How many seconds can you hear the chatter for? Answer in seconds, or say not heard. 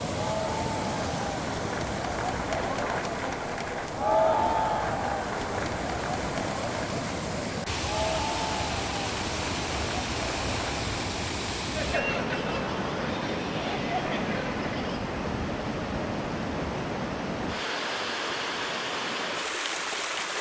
15 s.